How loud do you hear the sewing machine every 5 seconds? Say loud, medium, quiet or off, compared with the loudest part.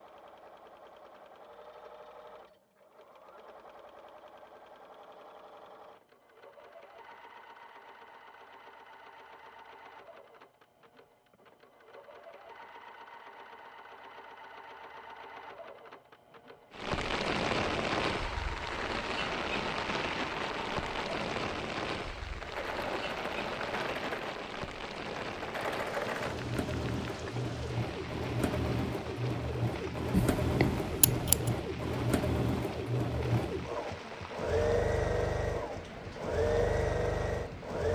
quiet, quiet, quiet, quiet, medium, loud, loud, loud.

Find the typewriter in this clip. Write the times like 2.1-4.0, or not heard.
not heard.